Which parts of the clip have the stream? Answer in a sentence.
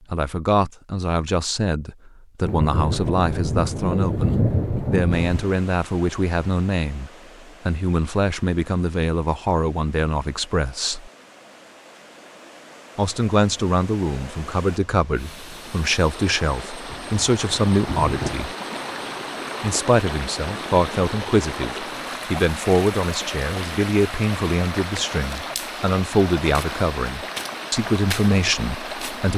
The stream can be heard from 5.1 to 29.3 s.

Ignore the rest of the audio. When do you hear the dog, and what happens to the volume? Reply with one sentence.
You can't hear the dog here.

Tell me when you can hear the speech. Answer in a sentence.
The speech can be heard from 0.1 to 11.1 s, from 12.9 to 18.5 s and from 19.6 to 29.3 s.